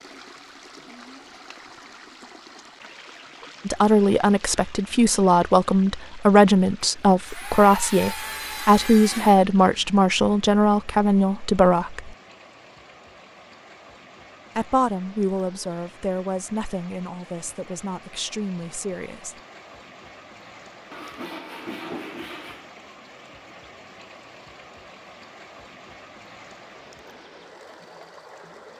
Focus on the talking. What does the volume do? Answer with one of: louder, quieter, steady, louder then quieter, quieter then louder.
quieter.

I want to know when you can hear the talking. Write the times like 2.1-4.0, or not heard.
3.6-12.2, 14.6-19.4.